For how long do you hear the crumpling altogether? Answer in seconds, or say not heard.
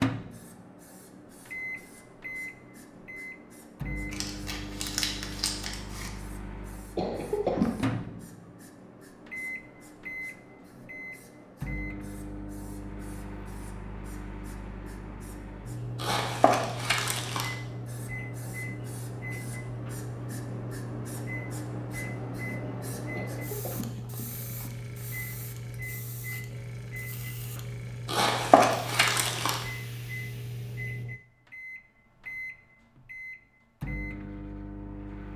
5 s.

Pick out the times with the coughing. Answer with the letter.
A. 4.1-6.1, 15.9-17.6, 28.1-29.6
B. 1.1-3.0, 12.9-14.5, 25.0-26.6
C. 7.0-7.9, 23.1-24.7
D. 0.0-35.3
C.